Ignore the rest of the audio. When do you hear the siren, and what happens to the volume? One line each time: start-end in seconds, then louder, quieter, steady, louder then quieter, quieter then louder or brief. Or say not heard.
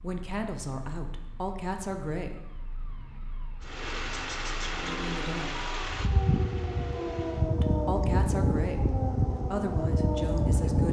0.0-10.8 louder.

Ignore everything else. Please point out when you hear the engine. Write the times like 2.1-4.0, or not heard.
3.6-7.5.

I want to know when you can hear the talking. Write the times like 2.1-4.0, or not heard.
0.0-2.5, 4.7-5.7, 7.6-10.8.